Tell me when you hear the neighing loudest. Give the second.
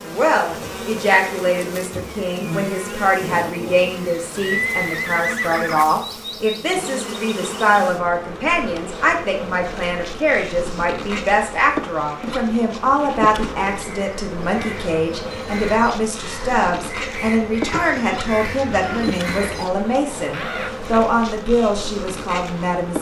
5 s.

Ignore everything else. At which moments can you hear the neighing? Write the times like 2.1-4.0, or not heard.
4.3-5.8, 17.7-19.2.